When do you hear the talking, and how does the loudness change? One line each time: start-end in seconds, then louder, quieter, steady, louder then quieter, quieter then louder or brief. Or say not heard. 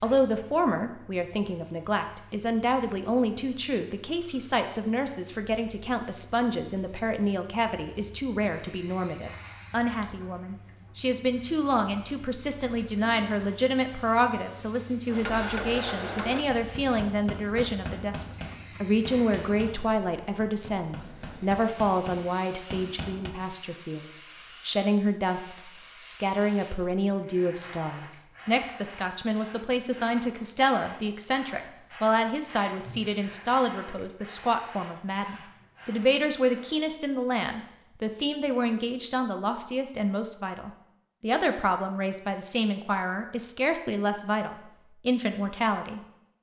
0.0-46.0 steady.